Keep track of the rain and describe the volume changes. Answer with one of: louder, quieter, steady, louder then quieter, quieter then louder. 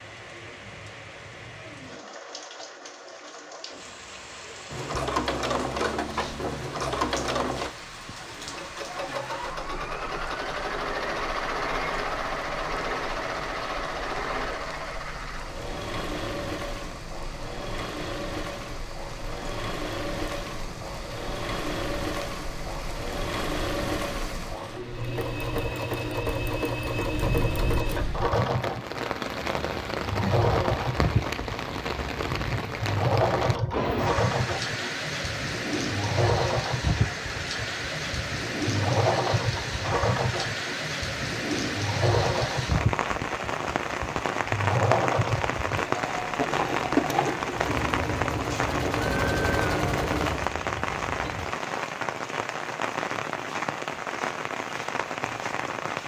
louder.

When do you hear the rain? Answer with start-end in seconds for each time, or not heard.
0.0-56.0.